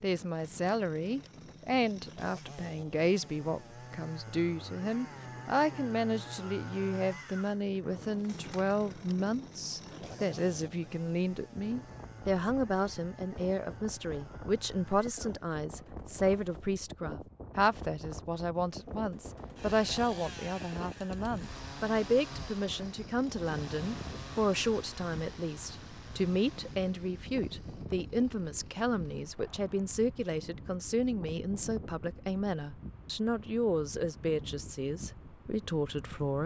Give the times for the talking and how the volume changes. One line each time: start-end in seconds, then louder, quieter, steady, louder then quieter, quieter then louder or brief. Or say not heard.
0.0-36.4 steady.